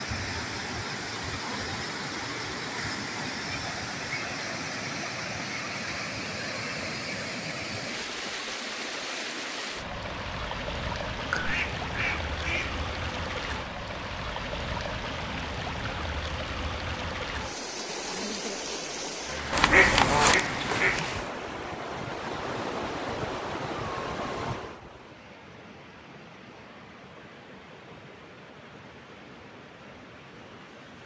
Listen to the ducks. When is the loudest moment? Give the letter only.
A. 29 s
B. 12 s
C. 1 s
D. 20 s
D.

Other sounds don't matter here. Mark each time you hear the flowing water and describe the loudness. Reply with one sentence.
The flowing water can be heard from 0.0 to 31.0 s, getting quieter.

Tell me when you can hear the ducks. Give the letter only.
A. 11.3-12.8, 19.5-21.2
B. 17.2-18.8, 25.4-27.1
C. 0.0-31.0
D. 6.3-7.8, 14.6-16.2
A.